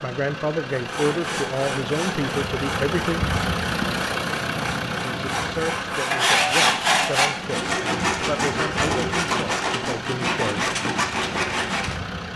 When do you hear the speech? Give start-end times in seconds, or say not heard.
0.0-3.2, 4.9-10.7.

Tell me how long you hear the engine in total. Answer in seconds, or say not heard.
12 s.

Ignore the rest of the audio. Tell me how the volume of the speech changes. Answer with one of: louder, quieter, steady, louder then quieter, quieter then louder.
quieter.